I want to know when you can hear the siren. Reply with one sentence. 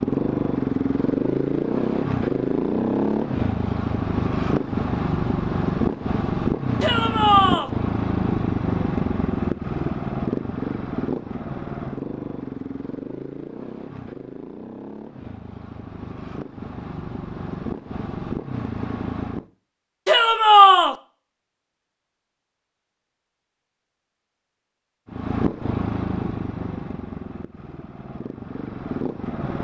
The siren can't be heard in this clip.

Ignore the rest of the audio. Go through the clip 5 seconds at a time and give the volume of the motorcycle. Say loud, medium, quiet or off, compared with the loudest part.
loud, loud, medium, medium, off, medium.